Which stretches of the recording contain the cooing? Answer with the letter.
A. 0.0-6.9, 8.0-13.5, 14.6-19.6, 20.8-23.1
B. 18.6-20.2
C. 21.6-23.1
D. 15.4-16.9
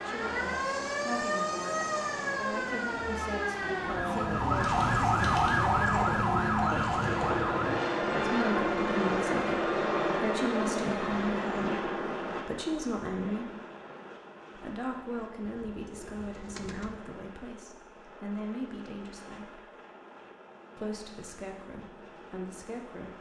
D.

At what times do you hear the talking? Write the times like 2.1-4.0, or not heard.
0.0-6.9, 8.0-13.5, 14.6-19.6, 20.8-23.1.